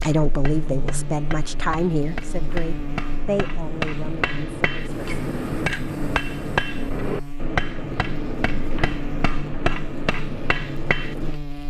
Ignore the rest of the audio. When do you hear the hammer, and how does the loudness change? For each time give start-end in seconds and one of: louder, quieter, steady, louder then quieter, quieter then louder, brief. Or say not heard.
0.0-11.3 louder.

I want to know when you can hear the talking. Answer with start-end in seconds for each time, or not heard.
0.0-5.2.